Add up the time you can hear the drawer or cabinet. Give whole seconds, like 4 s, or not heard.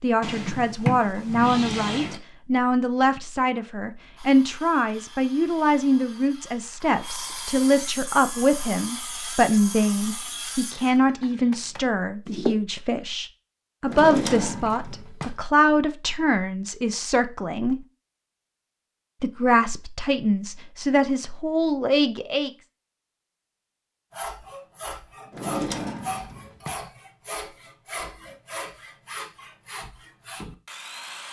5 s.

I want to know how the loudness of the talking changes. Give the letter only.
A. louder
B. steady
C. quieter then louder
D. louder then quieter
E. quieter
B.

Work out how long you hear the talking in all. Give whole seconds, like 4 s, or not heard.
21 s.